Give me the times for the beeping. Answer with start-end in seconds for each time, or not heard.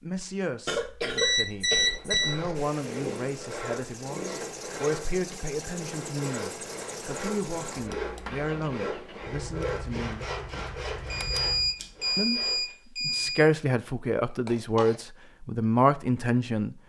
1.1-2.4, 11.1-13.4.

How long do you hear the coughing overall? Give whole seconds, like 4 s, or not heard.
3 s.